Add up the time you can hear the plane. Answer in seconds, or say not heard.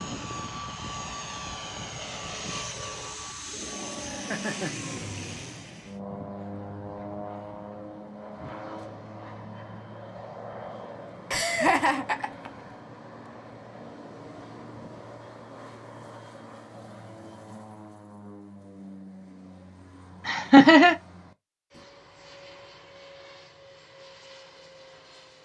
25 s.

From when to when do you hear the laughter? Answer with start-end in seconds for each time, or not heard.
4.0-4.7, 11.3-12.5, 20.2-20.9.